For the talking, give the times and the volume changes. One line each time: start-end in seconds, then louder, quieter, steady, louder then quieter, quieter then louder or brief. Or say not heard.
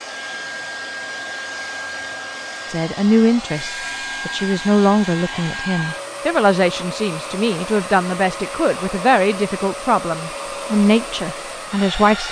2.6-12.2 steady.